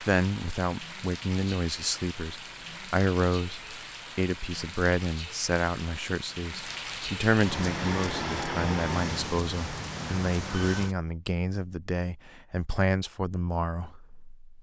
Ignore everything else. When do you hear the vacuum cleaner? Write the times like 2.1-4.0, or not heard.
7.3-9.4.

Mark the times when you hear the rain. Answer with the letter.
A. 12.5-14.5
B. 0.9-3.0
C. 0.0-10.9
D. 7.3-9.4
C.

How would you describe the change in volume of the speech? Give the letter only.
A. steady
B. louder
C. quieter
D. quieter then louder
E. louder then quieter
A.